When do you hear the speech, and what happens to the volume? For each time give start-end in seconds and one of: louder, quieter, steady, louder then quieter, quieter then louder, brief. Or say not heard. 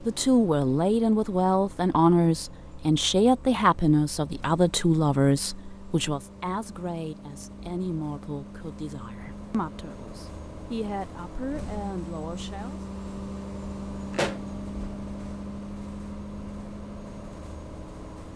0.0-12.8 quieter.